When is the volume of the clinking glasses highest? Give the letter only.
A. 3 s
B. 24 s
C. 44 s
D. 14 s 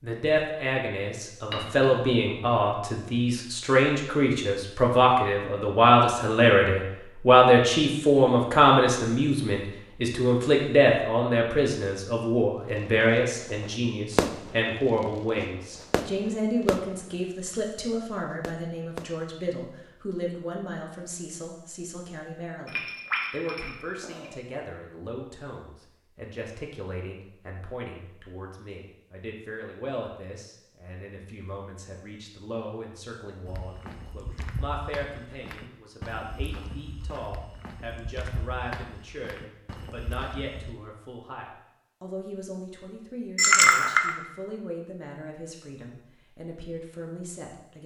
C.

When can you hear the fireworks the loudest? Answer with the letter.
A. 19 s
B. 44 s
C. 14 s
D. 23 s
C.